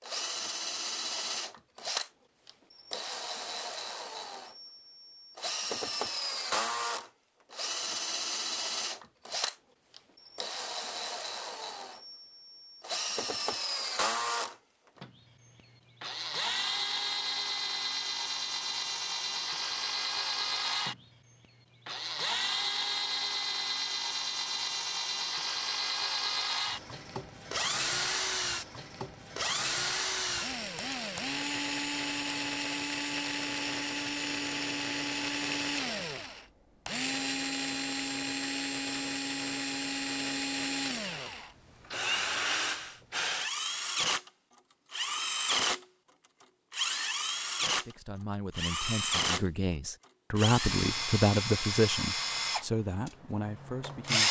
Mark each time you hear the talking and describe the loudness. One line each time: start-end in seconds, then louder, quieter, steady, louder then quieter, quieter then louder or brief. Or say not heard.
47.6-54.2 louder then quieter.